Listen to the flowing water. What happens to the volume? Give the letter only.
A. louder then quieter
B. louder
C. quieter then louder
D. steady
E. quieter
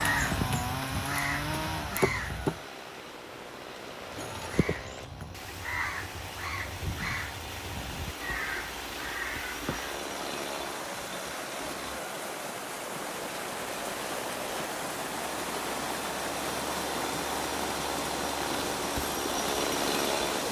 B.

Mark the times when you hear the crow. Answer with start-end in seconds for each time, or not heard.
0.0-2.6, 4.0-10.0.